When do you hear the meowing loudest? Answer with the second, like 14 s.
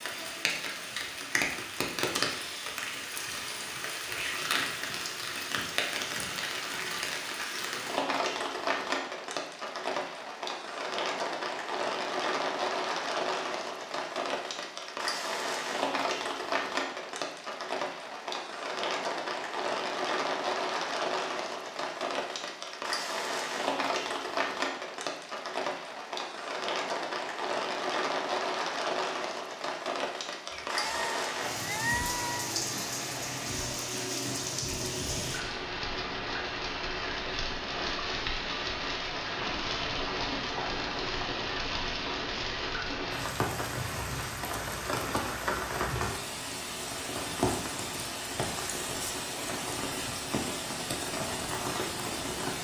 32 s.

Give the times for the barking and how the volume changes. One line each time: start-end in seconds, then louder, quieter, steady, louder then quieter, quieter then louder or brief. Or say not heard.
not heard.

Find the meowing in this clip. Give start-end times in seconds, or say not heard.
30.5-32.5.